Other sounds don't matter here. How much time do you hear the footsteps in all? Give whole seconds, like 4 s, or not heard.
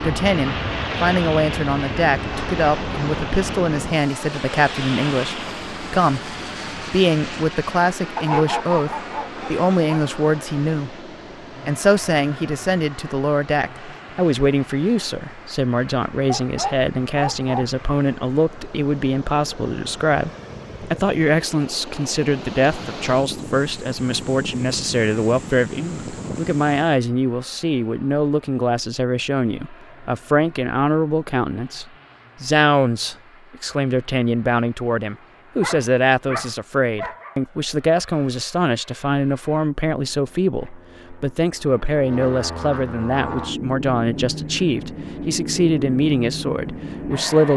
not heard.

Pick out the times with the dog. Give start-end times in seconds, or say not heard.
8.2-10.1, 16.2-17.7, 35.6-37.4.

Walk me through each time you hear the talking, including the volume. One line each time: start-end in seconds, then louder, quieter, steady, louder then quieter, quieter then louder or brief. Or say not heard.
0.0-11.1 steady
11.7-47.5 steady.